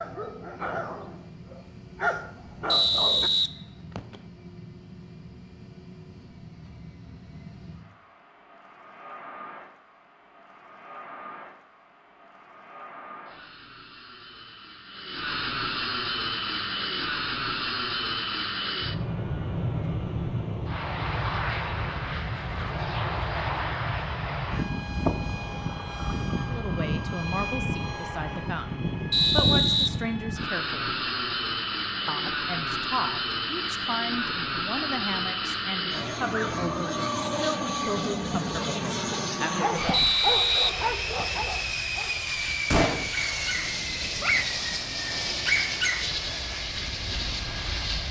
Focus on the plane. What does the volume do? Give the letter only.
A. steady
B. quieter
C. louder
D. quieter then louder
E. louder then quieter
C.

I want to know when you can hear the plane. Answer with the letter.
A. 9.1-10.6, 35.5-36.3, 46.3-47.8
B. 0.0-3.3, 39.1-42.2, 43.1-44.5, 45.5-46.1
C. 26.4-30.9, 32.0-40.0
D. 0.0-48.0
D.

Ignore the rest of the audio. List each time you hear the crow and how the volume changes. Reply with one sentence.
You can't hear the crow here.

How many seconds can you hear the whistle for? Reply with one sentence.
You can hear the whistle for 4 seconds altogether.